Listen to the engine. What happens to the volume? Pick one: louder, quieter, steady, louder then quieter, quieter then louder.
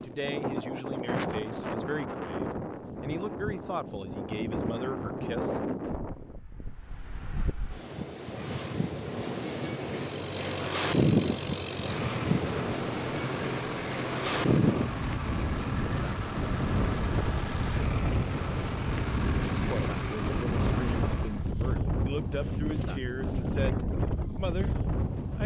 steady.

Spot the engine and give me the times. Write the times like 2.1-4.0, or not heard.
9.9-21.5.